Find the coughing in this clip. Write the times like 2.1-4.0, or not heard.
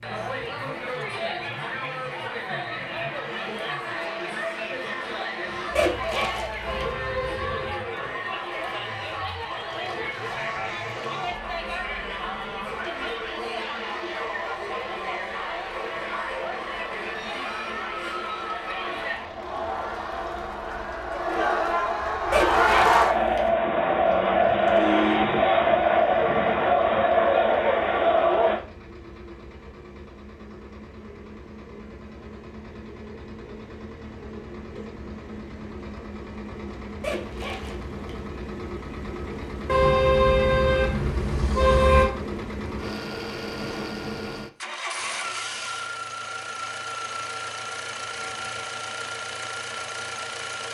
not heard.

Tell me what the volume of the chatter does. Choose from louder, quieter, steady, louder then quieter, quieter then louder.
louder.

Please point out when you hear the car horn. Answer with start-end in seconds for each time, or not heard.
6.7-7.8, 24.4-25.4, 39.6-42.1.